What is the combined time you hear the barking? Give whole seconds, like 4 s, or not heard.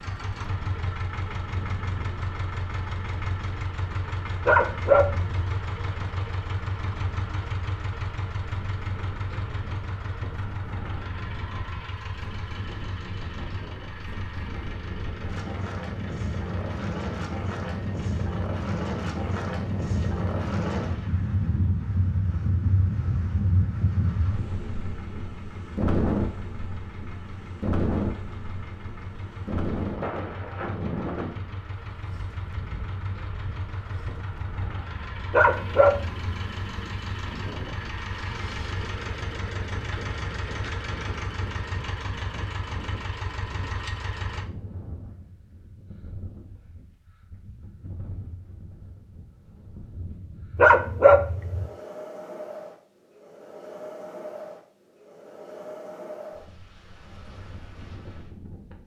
3 s.